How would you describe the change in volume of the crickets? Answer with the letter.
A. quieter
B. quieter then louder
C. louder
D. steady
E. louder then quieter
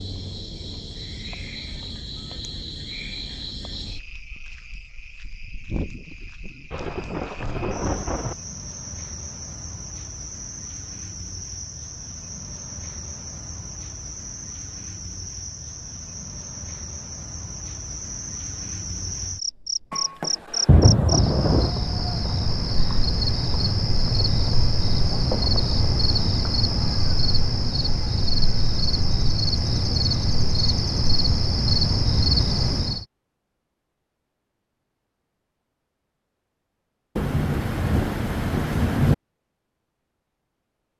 C.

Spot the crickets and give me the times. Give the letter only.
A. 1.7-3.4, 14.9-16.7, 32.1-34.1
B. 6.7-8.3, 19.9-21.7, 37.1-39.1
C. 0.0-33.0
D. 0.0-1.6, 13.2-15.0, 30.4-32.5
C.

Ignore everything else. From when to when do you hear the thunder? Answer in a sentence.
The thunder can be heard from 6.7 to 8.3 s, from 19.9 to 21.7 s and from 37.1 to 39.1 s.